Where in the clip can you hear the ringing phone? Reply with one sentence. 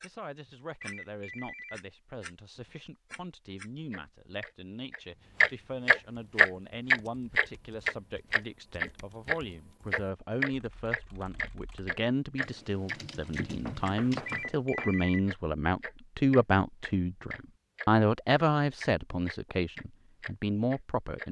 You can hear the ringing phone from 0.8 to 1.8 s and from 14.2 to 15.2 s.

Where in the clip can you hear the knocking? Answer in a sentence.
The knocking can be heard from 13.7 to 14.9 s.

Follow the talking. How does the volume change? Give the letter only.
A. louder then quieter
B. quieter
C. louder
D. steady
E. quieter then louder
C.